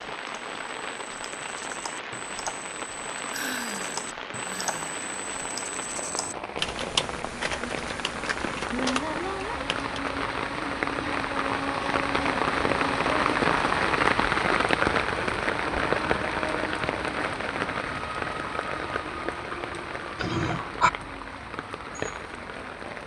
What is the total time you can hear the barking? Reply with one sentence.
The barking can't be heard in this clip.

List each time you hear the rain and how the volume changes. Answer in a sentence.
You can hear the rain from 0.0 to 23.0 s, getting louder then quieter.